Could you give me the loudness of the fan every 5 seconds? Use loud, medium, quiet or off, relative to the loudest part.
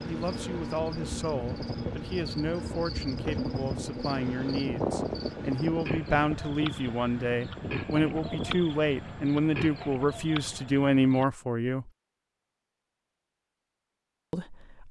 loud, loud, off.